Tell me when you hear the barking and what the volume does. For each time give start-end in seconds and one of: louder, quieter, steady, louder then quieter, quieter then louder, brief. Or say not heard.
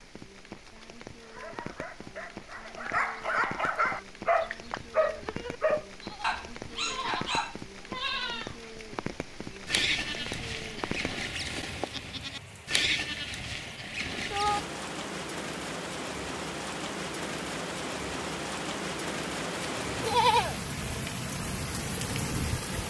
1.2-7.6 louder then quieter.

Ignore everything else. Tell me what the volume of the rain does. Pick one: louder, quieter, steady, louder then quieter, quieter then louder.
louder.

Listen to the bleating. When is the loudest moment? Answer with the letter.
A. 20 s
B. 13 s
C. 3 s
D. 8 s
A.